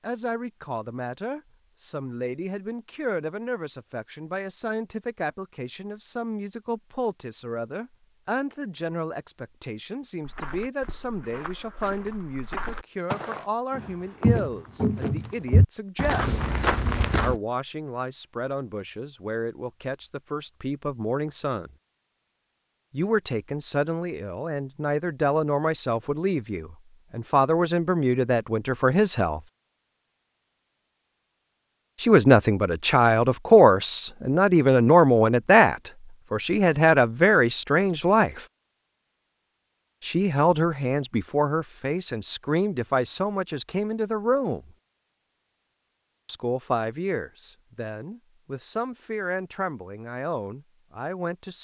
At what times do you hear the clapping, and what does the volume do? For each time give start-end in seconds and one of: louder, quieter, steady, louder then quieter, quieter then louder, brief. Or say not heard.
not heard.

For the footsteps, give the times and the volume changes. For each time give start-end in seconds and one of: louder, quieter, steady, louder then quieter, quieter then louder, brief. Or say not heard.
10.2-17.4 louder.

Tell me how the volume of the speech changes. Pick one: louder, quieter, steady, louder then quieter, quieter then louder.
louder then quieter.